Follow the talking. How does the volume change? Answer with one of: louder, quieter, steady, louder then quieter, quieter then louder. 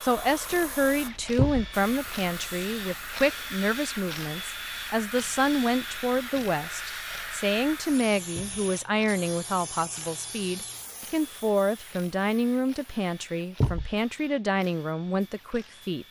steady.